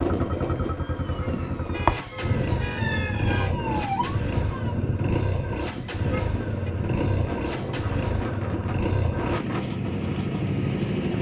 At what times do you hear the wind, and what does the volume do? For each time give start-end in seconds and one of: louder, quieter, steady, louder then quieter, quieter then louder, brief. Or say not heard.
0.0-11.1 steady.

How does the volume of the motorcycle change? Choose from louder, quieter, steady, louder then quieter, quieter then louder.
steady.